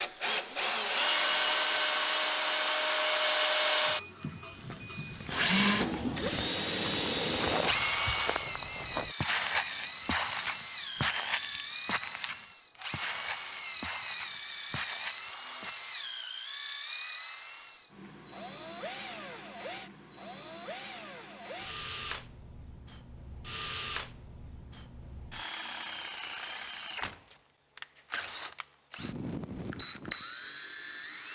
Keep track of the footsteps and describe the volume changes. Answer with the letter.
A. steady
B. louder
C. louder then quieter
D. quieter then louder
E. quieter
C.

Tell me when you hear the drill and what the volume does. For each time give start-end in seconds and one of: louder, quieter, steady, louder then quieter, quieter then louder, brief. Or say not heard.
0.0-31.3 quieter.